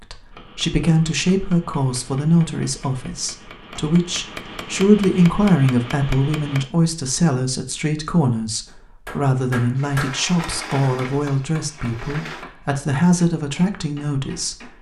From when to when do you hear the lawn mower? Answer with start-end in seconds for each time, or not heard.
not heard.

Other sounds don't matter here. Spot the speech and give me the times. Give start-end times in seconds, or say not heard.
0.0-14.7.